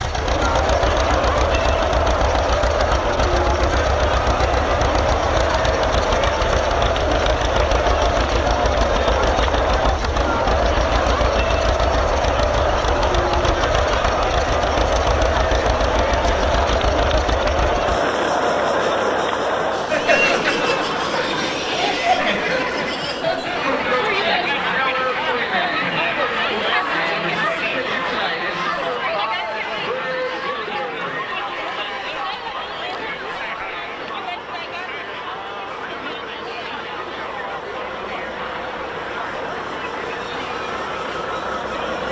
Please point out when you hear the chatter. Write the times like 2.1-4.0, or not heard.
0.0-42.0.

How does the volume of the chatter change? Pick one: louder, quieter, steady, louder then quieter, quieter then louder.
quieter.